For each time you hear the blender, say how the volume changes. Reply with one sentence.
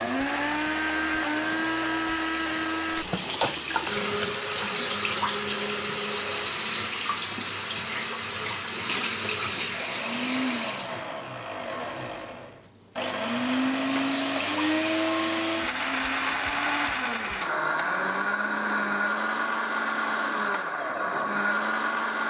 The blender can be heard from 0.0 to 22.2 s, getting quieter then louder.